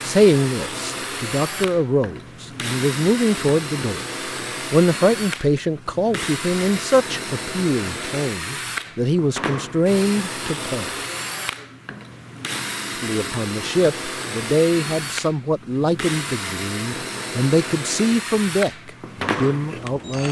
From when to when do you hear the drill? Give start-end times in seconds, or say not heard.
0.0-20.2.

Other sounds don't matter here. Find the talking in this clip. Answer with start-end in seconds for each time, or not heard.
0.0-4.0, 4.7-10.9, 13.0-20.2.